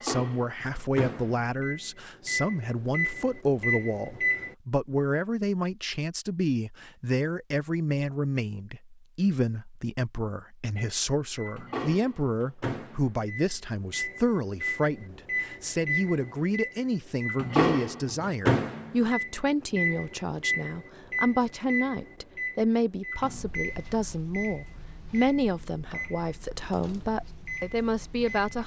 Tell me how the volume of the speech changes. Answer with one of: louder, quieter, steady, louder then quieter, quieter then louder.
steady.